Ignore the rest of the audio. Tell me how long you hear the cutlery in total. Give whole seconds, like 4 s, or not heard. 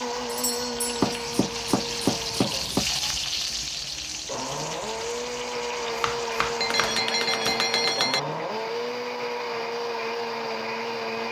not heard.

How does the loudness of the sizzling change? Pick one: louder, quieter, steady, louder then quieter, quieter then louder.
louder then quieter.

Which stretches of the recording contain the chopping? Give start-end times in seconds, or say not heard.
1.0-2.9, 6.0-7.8.